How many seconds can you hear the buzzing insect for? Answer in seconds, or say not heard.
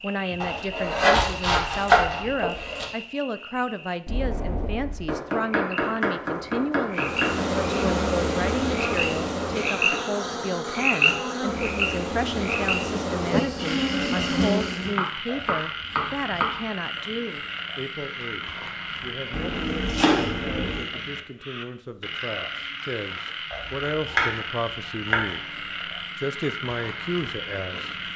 8 s.